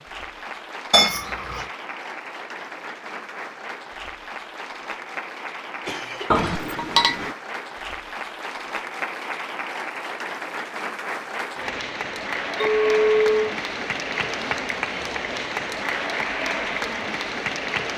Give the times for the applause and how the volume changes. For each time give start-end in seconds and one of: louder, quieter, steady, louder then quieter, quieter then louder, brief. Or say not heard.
0.0-17.9 louder.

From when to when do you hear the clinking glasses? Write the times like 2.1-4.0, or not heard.
0.9-1.6, 6.3-7.3, 12.6-13.6.